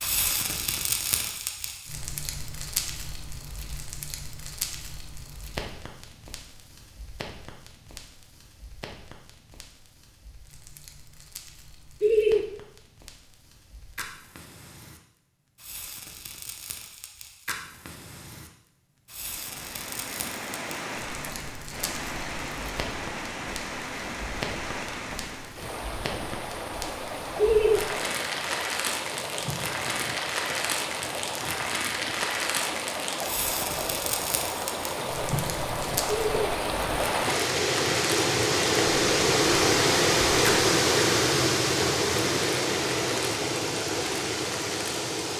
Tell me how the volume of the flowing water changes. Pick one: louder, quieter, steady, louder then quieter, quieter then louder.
louder.